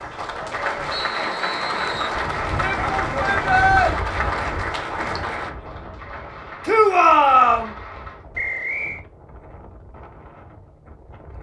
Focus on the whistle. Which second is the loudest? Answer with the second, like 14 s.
9 s.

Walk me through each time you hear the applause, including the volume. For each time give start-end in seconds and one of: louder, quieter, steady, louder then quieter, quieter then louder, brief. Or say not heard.
0.0-8.2 quieter.